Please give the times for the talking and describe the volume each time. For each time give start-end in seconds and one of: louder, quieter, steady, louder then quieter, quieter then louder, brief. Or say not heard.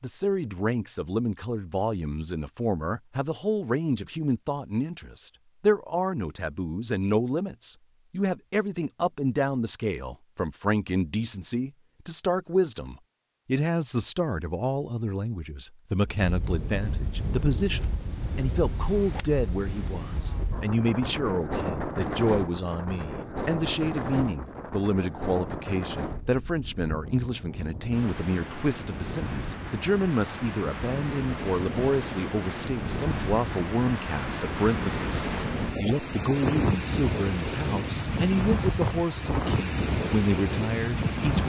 0.0-41.4 steady.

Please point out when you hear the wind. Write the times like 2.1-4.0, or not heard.
16.0-41.4.